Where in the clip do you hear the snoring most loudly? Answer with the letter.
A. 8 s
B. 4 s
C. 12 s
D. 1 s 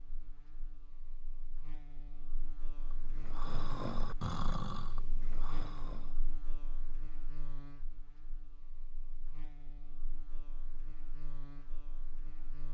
B.